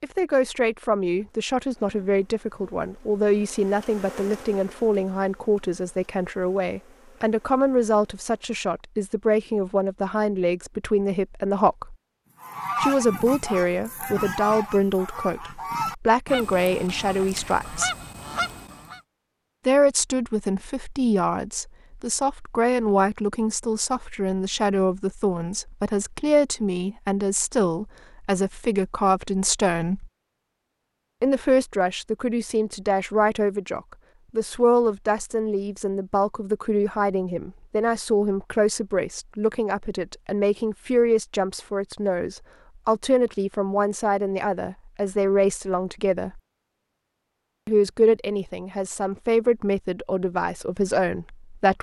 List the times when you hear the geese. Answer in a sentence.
The geese can be heard from 12.4 to 19.0 s.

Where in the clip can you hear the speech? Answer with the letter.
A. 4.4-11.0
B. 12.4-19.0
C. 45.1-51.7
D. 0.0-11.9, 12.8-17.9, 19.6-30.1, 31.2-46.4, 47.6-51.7
D.